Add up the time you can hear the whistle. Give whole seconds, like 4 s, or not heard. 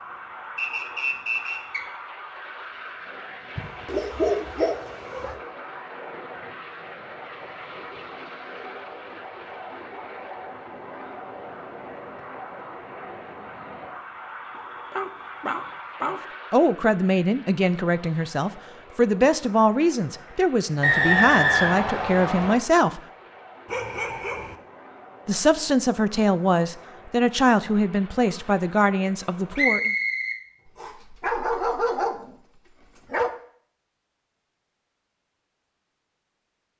4 s.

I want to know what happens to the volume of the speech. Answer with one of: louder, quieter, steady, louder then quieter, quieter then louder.
steady.